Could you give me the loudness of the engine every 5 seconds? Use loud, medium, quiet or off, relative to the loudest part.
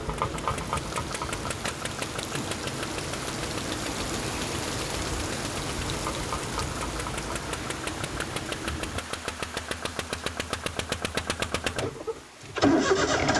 medium, medium, loud.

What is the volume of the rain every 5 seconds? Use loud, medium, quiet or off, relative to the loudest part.
loud, loud, quiet.